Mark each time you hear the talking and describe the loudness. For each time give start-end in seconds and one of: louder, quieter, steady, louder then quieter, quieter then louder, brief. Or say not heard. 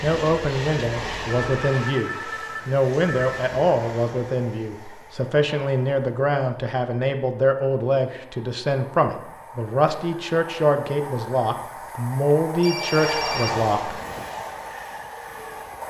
0.0-13.9 steady.